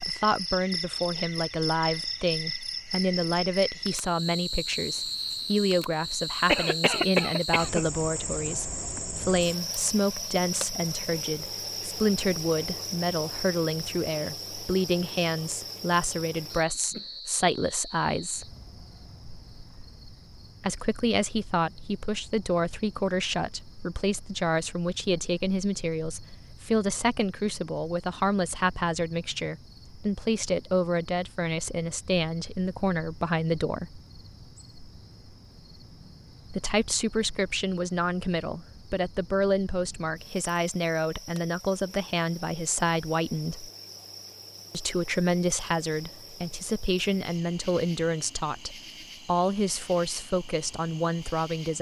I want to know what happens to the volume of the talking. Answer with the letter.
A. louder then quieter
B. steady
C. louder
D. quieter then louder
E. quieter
B.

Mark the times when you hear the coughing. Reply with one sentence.
You can hear the coughing from 6.5 to 7.8 s.